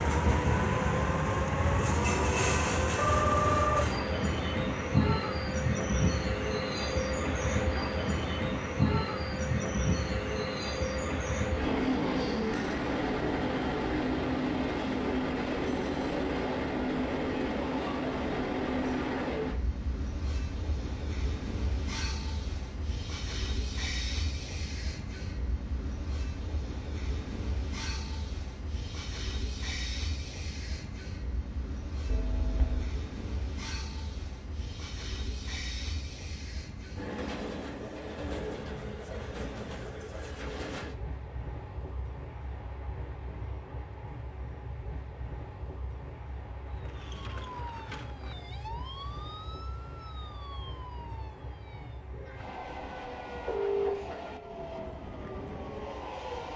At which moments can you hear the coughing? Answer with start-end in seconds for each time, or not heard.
not heard.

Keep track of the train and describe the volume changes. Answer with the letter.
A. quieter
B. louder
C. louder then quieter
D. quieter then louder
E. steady
A.